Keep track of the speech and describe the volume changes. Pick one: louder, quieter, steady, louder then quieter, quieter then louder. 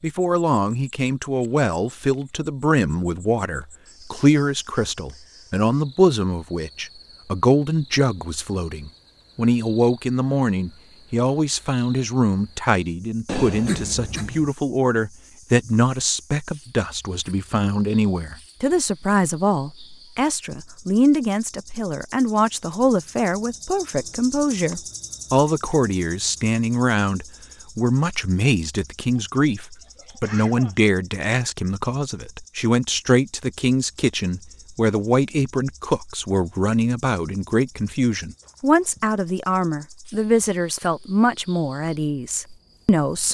steady.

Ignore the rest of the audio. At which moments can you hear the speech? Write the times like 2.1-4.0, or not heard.
0.0-43.3.